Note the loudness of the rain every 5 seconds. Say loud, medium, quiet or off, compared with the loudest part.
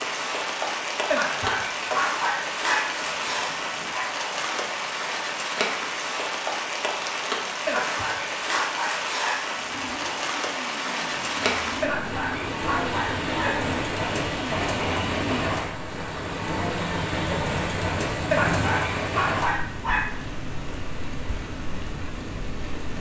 loud, loud, loud, loud, medium.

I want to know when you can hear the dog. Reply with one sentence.
You can hear the dog from 1.1 to 4.0 s, from 7.7 to 9.4 s, from 11.8 to 13.7 s and from 18.3 to 20.4 s.